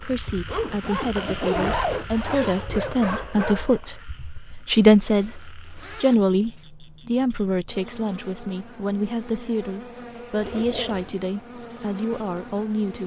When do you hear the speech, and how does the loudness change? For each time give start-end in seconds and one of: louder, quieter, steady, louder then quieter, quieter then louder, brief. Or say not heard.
0.0-13.0 louder then quieter.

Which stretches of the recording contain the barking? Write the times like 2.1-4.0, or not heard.
1.1-4.0.